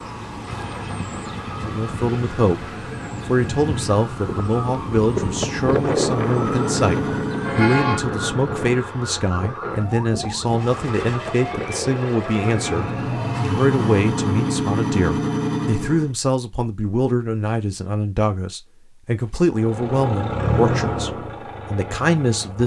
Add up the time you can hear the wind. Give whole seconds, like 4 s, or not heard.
13 s.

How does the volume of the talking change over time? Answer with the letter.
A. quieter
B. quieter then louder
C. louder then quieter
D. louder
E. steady
E.